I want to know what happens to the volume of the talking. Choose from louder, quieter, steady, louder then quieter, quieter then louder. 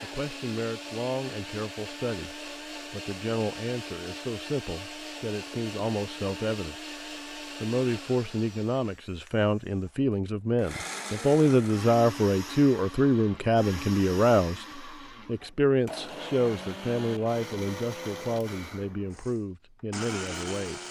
louder then quieter.